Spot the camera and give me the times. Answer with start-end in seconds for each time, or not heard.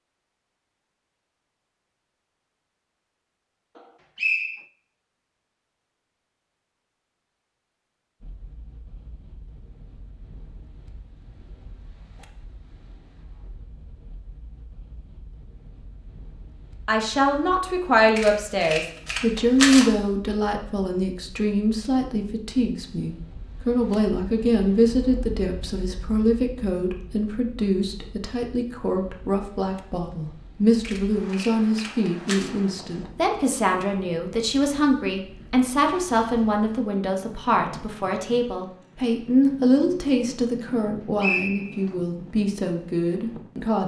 18.1-19.9, 30.8-32.5.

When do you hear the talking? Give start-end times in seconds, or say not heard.
16.9-43.8.